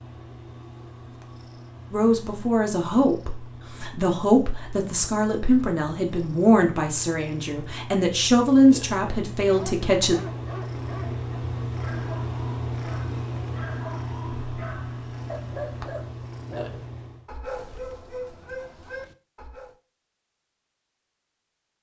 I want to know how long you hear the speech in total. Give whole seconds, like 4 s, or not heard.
8 s.